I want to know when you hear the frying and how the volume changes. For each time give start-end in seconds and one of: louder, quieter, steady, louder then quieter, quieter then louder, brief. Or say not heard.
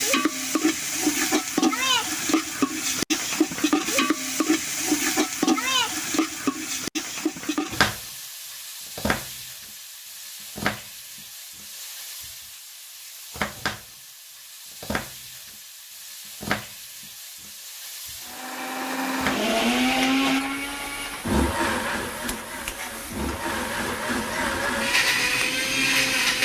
0.0-26.3 quieter.